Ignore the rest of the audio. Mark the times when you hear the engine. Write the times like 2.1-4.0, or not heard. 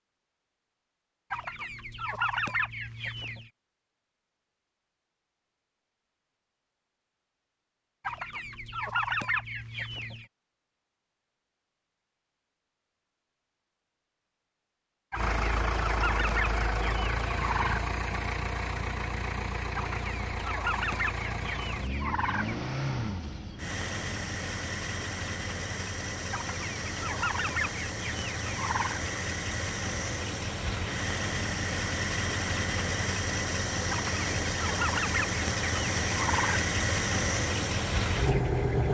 15.1-38.9.